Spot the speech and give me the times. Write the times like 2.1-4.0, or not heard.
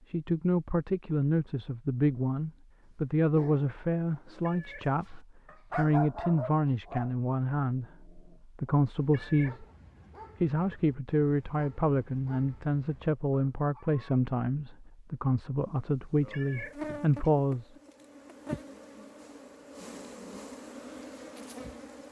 0.1-9.7, 10.4-17.7.